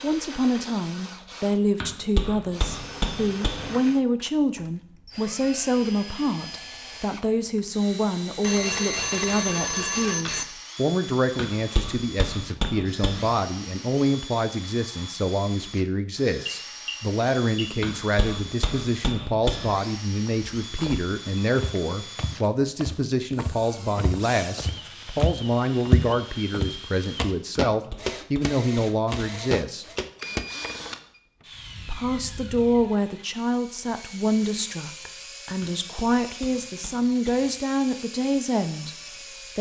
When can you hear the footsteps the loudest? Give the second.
26 s.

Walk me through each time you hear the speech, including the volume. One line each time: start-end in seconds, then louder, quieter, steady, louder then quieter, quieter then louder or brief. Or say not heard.
0.0-29.9 steady
31.9-39.0 quieter then louder.